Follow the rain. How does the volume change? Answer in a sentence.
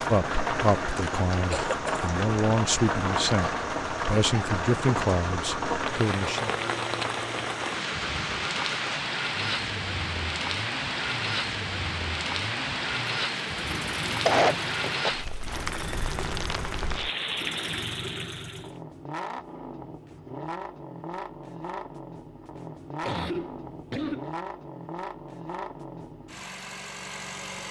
The volume of the rain stays about the same.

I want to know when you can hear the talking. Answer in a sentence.
You can hear the talking from 0.1 to 6.5 s.